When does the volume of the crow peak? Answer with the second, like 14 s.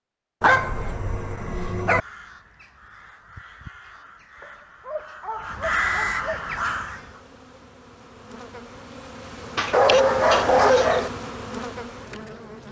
6 s.